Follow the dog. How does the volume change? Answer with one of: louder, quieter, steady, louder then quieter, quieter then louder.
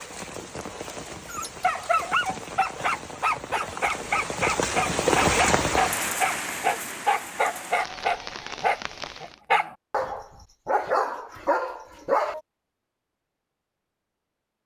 steady.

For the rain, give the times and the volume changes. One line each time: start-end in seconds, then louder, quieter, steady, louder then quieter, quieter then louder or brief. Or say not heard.
0.0-9.4 louder then quieter.